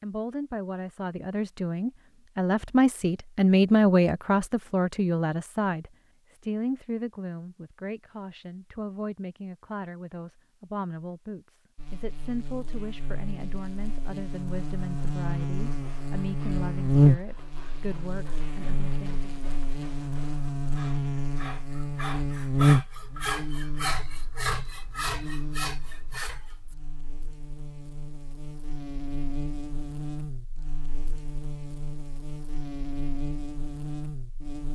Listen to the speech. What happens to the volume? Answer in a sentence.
The loudness of the speech goes down.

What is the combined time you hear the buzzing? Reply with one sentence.
You can hear the buzzing for 23 seconds altogether.